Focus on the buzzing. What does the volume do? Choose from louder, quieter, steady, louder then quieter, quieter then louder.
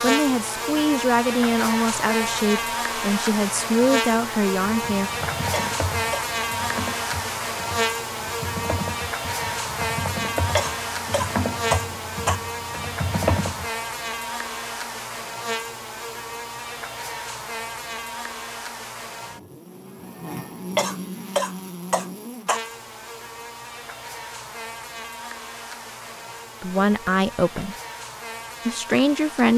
quieter.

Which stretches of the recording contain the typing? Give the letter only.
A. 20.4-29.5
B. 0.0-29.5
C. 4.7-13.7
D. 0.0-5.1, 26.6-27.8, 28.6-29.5
C.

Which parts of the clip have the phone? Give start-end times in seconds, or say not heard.
not heard.